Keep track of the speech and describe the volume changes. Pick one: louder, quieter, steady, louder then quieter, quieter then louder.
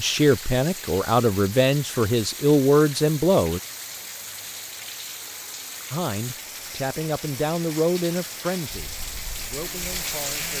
quieter.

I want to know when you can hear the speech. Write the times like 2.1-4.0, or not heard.
0.0-3.6, 5.9-10.5.